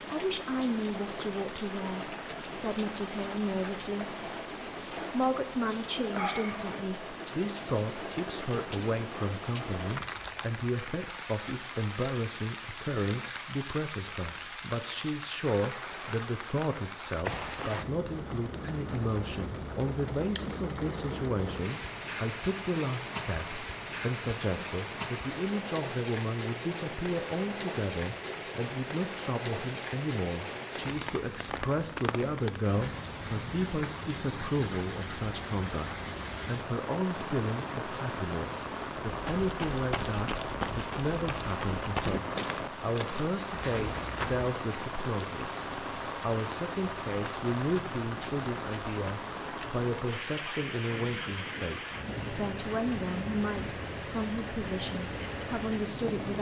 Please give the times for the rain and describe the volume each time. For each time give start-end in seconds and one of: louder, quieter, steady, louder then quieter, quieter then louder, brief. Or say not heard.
0.0-56.3 steady.